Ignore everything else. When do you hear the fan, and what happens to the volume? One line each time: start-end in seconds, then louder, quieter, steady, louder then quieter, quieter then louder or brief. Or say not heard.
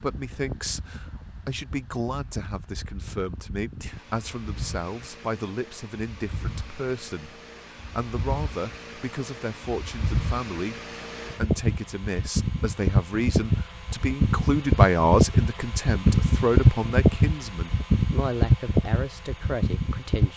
0.0-20.3 louder.